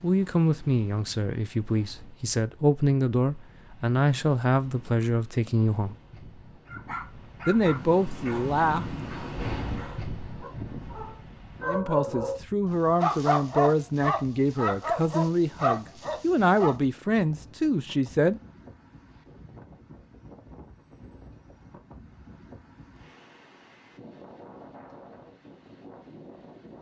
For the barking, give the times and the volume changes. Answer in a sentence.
You can hear the barking from 6.7 to 16.8 s, getting quieter then louder.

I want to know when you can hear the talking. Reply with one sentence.
The talking can be heard from 0.0 to 6.0 s, from 7.5 to 8.9 s and from 11.7 to 18.4 s.